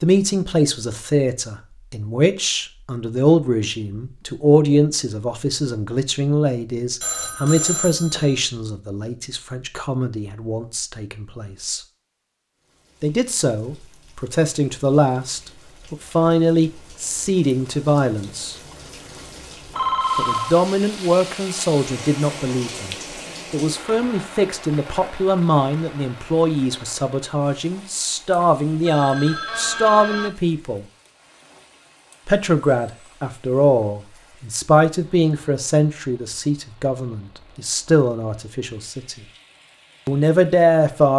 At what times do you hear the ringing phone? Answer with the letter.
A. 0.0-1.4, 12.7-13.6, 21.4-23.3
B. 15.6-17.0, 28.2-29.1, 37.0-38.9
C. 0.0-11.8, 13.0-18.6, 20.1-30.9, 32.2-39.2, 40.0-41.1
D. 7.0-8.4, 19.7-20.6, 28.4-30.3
D.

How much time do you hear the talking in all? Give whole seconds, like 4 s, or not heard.
36 s.